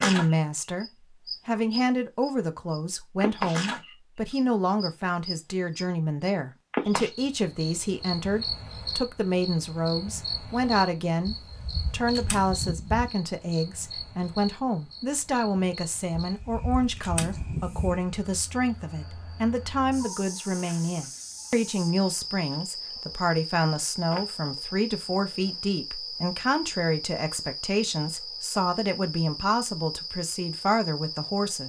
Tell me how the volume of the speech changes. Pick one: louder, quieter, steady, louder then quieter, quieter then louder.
steady.